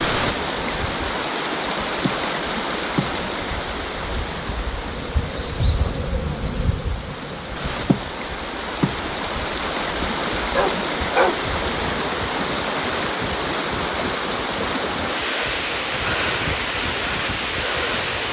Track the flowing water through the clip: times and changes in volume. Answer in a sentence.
The flowing water can be heard from 0.0 to 18.2 s, getting quieter then louder.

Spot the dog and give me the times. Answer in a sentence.
The dog can be heard from 10.0 to 11.4 s.